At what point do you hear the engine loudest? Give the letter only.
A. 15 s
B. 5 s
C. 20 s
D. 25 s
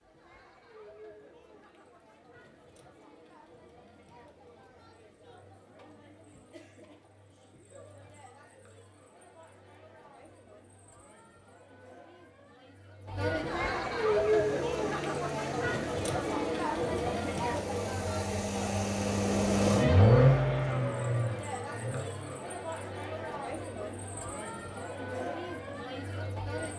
C.